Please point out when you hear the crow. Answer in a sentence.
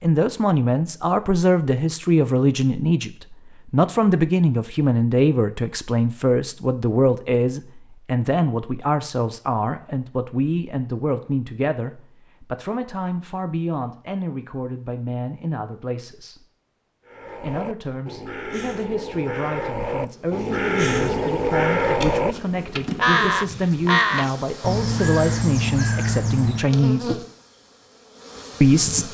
You can hear the crow from 17.1 to 26.8 s.